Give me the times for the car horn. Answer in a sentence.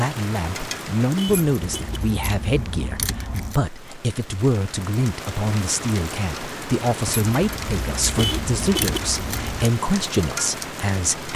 The car horn can be heard from 1.1 to 2.0 s and from 8.2 to 9.0 s.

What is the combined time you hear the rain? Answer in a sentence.
The rain can be heard for 11 seconds in total.